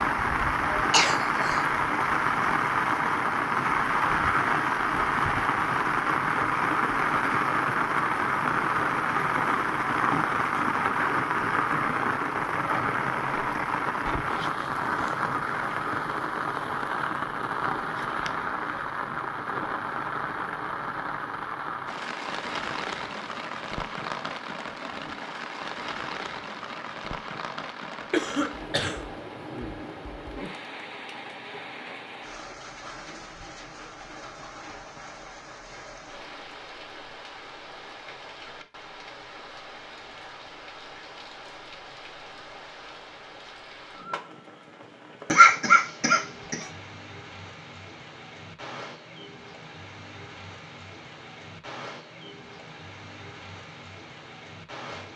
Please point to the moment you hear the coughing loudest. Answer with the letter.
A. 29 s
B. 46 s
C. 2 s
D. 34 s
B.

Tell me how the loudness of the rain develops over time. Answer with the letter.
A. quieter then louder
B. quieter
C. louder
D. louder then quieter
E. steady
B.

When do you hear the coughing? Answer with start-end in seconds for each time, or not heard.
0.7-1.6, 28.1-29.0, 45.3-46.6.